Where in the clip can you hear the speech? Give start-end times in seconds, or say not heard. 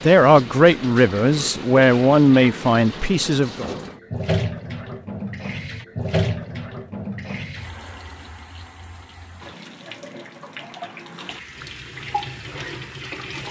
0.1-3.6.